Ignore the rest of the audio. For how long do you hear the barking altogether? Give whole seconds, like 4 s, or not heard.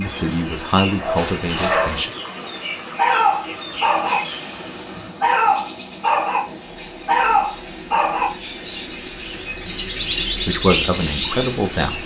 7 s.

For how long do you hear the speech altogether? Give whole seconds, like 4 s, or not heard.
4 s.